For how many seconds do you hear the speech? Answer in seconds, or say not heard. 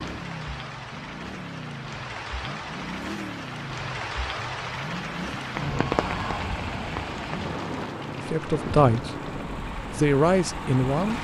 2 s.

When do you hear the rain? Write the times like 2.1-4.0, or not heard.
0.0-11.1.